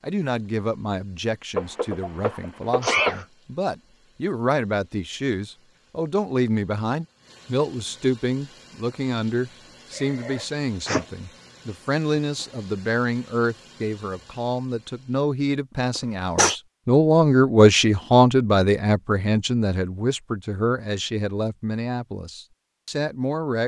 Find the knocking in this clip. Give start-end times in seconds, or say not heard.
1.6-3.2.